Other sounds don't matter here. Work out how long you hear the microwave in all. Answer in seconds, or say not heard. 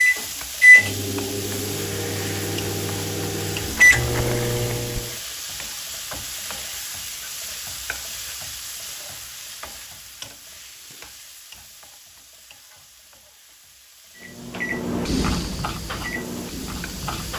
8 s.